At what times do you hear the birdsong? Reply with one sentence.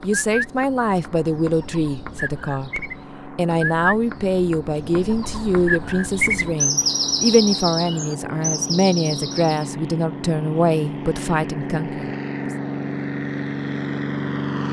You can hear the birdsong from 0.0 to 9.7 s.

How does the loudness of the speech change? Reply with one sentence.
The volume of the speech stays about the same.